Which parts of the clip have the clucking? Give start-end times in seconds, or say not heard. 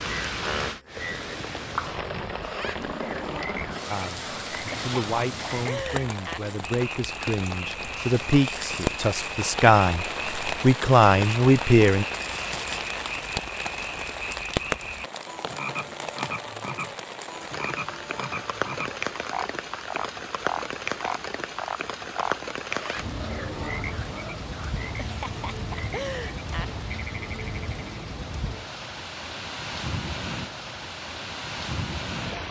not heard.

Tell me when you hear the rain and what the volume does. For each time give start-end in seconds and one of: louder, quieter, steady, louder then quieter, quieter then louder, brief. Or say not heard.
0.0-32.4 steady.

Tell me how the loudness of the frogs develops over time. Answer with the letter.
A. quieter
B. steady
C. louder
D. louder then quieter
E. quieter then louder
B.